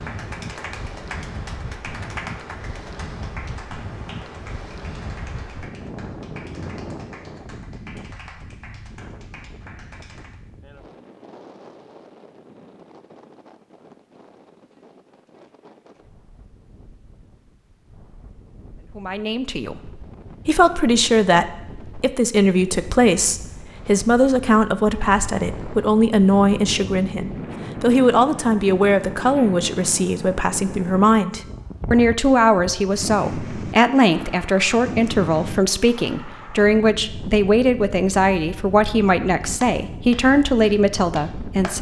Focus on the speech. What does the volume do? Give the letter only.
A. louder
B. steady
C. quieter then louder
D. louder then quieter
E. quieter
B.